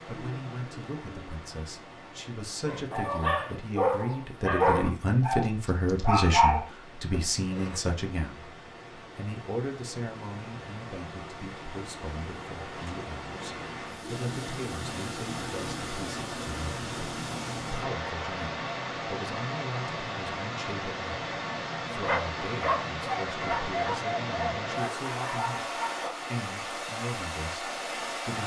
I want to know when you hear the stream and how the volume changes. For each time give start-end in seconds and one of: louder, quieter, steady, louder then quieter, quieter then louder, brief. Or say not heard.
0.0-28.4 louder.